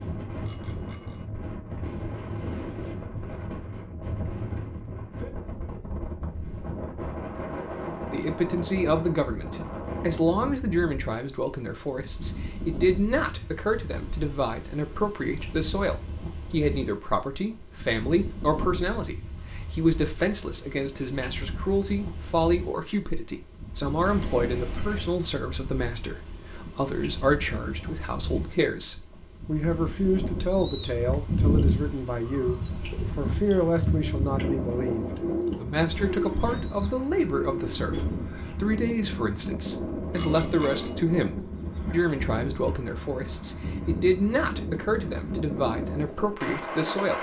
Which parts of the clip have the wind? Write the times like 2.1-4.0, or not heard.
0.0-47.1.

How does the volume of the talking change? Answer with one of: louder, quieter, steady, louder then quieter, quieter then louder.
steady.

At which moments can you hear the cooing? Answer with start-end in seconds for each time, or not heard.
30.5-38.5.